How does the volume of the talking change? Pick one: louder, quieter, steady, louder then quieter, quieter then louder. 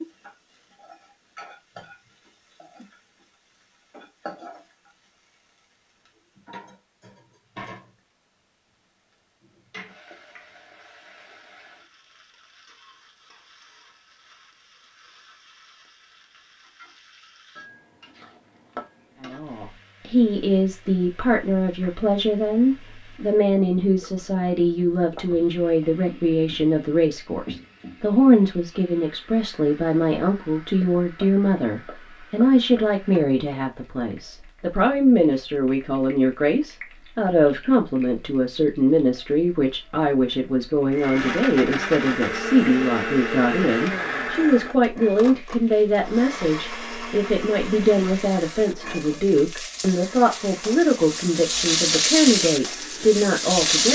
steady.